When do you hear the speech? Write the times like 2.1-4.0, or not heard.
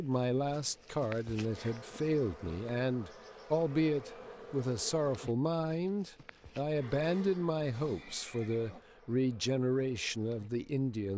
0.0-11.1.